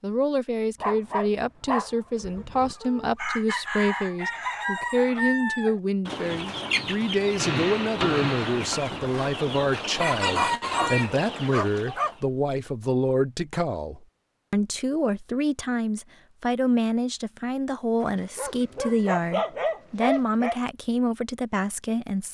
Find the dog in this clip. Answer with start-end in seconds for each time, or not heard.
0.8-2.8, 10.2-12.2, 18.0-20.6.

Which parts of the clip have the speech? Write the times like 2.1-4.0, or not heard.
0.0-22.2.